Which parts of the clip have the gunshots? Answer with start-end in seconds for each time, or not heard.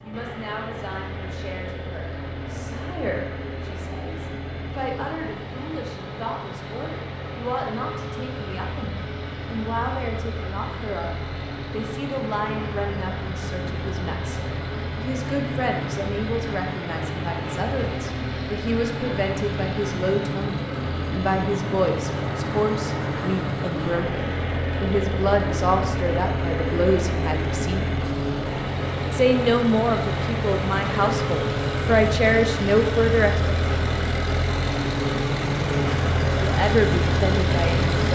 not heard.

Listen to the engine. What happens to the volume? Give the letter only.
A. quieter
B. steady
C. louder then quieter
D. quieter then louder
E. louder
E.